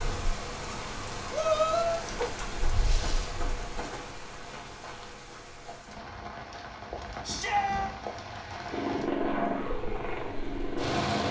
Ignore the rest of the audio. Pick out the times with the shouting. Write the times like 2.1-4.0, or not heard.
1.3-2.0, 7.2-8.0.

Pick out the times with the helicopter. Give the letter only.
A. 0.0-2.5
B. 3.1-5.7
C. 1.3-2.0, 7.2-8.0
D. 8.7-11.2
D.